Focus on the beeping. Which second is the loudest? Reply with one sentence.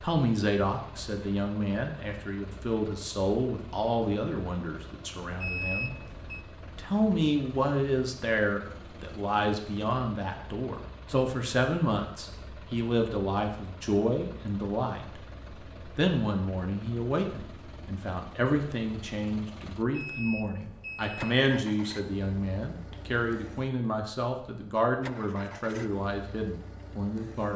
The volume of the beeping peaks at 6 seconds.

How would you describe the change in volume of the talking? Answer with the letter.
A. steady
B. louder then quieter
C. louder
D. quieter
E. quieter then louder
A.